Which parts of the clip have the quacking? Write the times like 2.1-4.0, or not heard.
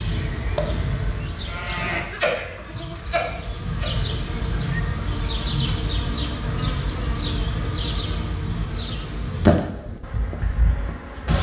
not heard.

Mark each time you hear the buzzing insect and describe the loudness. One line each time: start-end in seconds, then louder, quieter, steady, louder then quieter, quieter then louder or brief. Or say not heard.
0.0-11.3 louder.